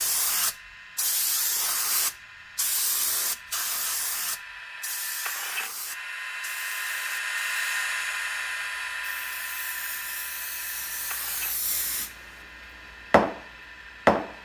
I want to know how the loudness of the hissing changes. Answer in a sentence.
The volume of the hissing goes down, then up.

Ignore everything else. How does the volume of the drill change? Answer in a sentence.
The loudness of the drill goes up, then down.